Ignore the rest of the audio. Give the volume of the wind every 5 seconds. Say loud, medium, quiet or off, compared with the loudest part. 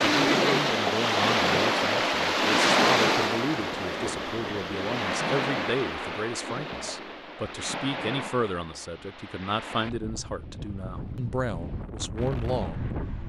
loud, medium, quiet.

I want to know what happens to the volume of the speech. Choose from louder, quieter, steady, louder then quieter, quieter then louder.
steady.